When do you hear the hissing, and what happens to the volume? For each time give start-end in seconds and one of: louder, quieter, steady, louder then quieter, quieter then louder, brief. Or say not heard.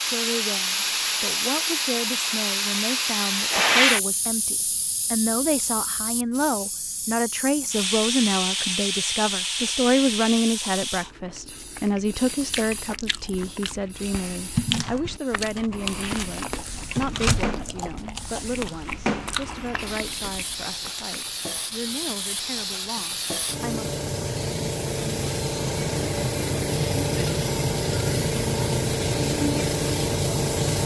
0.0-30.8 quieter then louder.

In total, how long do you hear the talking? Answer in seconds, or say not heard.
24 s.